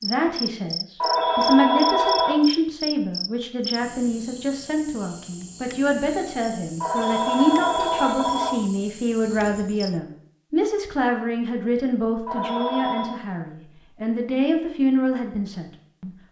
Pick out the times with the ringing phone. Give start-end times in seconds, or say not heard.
1.0-2.5, 6.8-8.6, 12.2-13.2.